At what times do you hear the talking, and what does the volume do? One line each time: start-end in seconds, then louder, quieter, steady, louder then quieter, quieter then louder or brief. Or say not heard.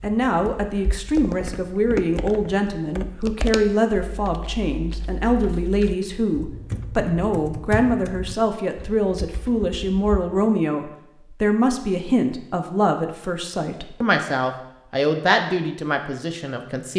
0.0-16.9 steady.